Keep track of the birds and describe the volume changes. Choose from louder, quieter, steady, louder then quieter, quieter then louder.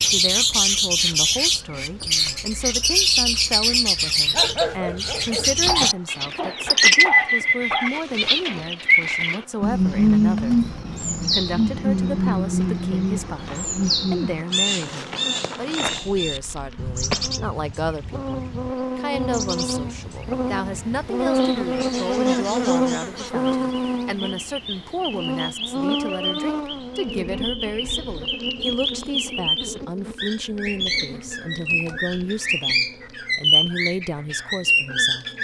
quieter then louder.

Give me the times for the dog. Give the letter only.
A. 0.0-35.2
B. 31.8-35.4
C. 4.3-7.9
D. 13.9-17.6
C.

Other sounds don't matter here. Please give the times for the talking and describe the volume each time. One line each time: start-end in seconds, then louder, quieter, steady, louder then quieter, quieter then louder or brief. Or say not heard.
0.0-35.2 steady.